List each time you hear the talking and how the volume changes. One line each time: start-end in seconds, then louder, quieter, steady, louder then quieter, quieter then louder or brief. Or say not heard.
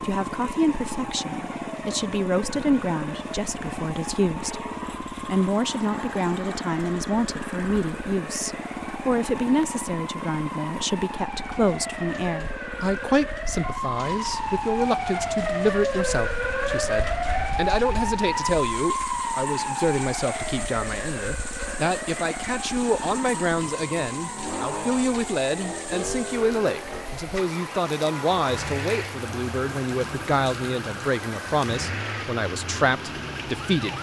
0.0-33.9 steady.